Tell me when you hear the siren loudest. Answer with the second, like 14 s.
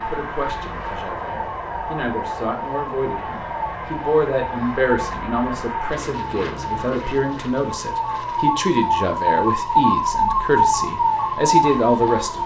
10 s.